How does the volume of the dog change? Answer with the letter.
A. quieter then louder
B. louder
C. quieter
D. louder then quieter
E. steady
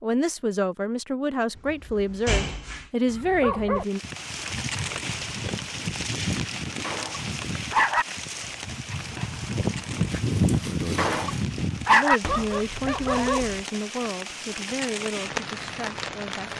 B.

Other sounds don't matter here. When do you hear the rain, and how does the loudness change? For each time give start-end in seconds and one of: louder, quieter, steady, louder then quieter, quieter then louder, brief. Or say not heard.
3.8-16.5 quieter then louder.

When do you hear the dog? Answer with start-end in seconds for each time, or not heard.
3.0-13.7.